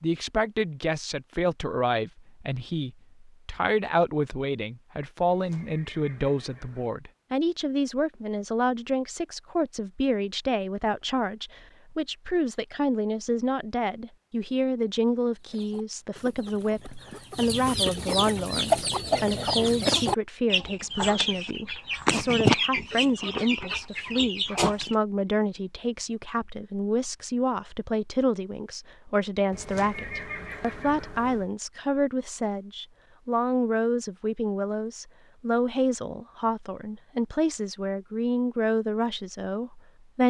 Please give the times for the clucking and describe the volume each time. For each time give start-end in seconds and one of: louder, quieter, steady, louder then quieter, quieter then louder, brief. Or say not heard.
15.4-24.9 louder then quieter.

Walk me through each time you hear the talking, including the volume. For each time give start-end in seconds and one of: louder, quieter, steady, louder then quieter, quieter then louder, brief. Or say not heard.
0.0-40.2 steady.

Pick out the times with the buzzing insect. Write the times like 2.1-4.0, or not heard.
not heard.